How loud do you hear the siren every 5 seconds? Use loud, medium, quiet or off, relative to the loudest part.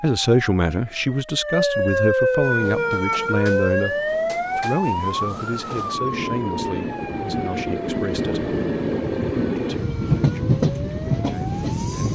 loud, medium, quiet.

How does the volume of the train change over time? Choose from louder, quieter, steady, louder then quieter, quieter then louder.
louder.